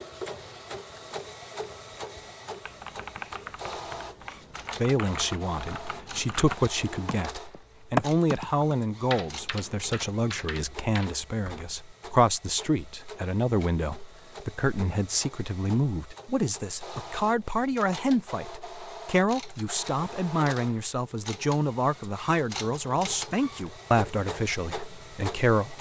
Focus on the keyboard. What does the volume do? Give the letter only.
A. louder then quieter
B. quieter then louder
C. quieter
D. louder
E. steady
A.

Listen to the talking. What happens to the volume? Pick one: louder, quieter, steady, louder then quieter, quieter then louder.
steady.